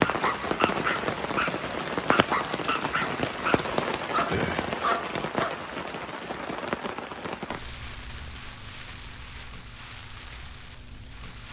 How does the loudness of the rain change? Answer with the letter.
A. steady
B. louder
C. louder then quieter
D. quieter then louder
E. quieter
E.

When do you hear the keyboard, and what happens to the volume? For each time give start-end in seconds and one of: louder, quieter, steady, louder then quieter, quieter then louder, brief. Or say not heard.
not heard.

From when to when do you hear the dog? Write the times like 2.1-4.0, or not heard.
0.0-5.5.